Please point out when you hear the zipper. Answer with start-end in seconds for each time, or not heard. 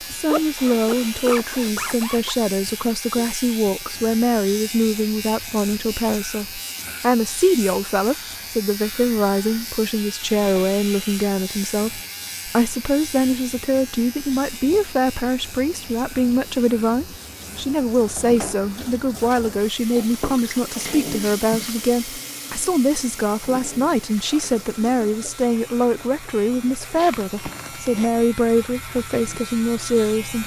0.1-2.4, 26.9-28.2.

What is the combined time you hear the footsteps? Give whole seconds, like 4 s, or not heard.
not heard.